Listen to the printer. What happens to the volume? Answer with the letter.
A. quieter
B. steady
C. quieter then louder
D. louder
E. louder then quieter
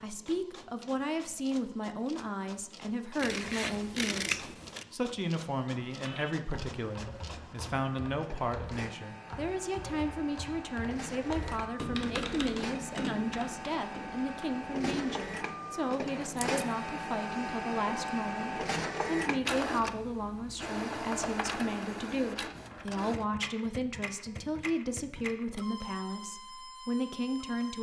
E.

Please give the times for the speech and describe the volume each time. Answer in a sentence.
The speech can be heard from 0.0 to 27.7 s, at a steady volume.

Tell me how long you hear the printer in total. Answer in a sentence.
You can hear the printer for 28 seconds altogether.